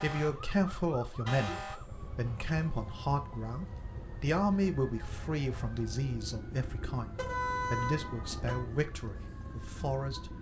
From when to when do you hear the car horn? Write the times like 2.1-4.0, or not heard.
1.2-1.8, 7.2-8.7.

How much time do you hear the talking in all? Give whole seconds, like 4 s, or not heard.
10 s.